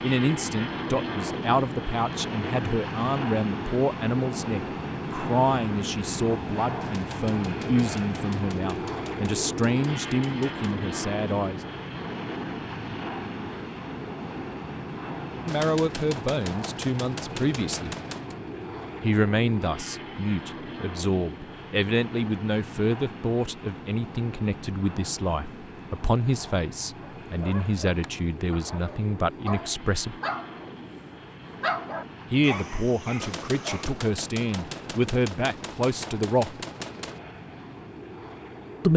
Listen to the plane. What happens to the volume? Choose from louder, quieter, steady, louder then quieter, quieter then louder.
quieter.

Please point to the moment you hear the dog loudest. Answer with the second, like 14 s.
32 s.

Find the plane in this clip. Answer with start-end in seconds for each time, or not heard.
0.0-38.9.